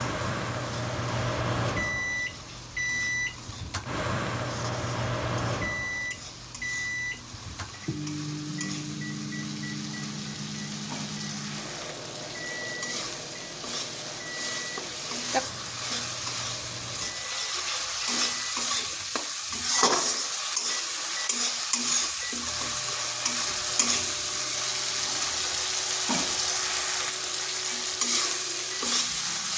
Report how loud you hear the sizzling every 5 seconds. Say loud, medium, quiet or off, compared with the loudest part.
quiet, quiet, medium, loud, loud, loud.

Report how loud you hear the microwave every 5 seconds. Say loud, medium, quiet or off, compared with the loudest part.
loud, loud, medium, quiet, quiet, quiet.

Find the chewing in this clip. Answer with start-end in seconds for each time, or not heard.
not heard.